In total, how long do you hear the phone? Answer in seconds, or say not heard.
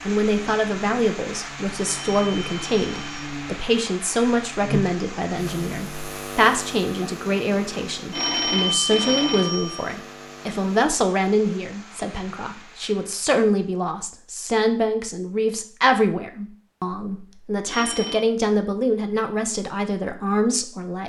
4 s.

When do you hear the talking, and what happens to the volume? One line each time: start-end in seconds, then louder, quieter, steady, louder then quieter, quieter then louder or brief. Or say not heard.
0.1-21.0 steady.